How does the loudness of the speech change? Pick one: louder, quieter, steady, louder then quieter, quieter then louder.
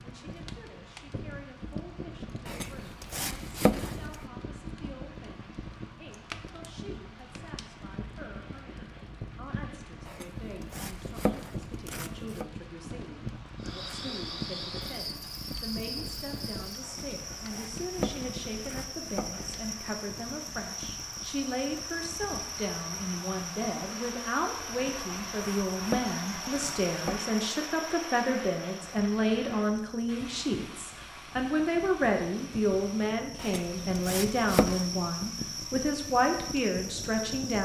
louder.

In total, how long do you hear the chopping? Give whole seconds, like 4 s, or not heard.
11 s.